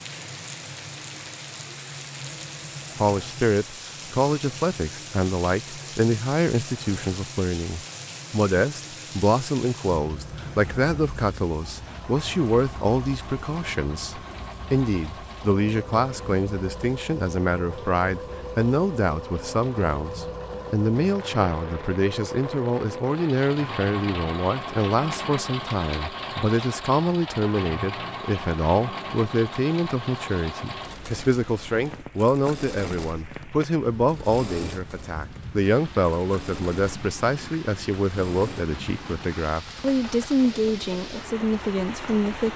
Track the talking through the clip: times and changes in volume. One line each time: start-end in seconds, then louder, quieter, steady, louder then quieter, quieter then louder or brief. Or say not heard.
3.0-42.5 steady.